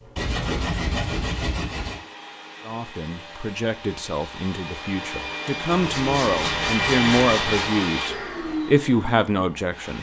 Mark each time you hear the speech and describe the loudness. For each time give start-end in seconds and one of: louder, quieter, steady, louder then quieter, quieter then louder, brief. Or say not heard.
2.6-9.9 louder.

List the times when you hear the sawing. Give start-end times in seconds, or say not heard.
0.1-2.0, 5.7-7.8.